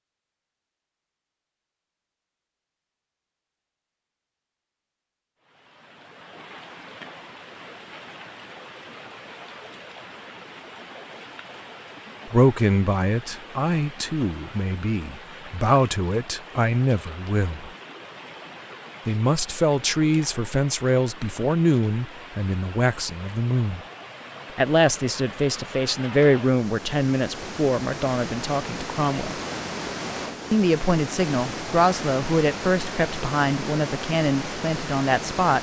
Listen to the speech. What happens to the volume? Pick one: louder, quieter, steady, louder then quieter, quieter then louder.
steady.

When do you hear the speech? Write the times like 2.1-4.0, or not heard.
12.2-17.7, 19.1-23.8, 24.6-29.4, 30.5-35.5.